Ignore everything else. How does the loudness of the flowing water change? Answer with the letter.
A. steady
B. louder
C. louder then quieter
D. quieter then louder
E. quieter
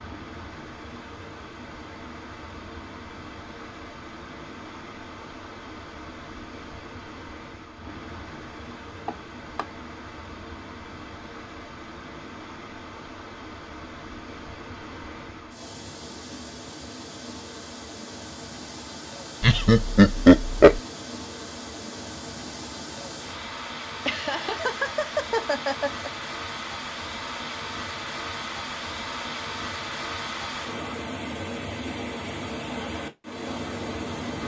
B.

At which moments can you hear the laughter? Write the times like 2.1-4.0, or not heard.
9.1-9.7, 19.4-20.8, 24.1-26.1.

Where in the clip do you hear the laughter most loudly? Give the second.
20 s.